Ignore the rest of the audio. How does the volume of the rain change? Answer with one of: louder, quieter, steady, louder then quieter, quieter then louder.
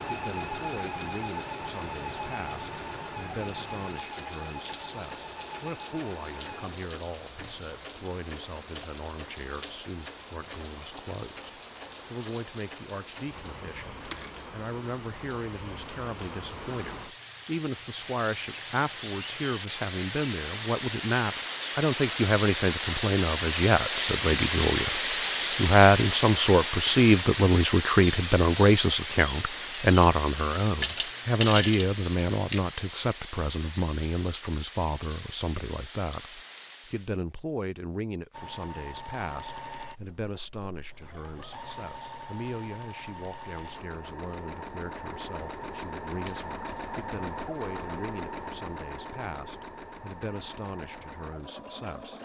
louder then quieter.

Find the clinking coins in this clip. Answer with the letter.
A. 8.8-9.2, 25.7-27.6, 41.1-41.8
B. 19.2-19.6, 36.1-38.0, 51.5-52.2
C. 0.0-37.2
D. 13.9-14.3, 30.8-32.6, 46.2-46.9
D.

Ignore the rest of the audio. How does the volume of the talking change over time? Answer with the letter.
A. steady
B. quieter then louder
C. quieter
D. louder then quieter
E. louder
D.